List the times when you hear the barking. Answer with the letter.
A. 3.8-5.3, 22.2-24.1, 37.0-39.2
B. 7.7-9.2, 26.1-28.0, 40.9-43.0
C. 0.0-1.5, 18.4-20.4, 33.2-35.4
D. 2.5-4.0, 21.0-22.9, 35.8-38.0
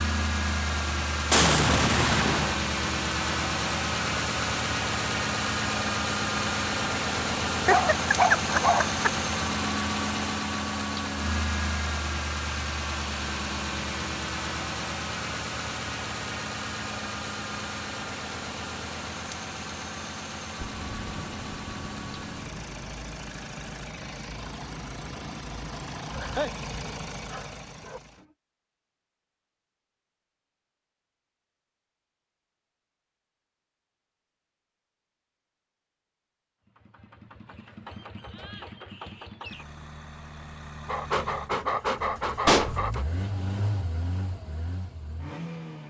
B.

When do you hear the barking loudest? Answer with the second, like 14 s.
8 s.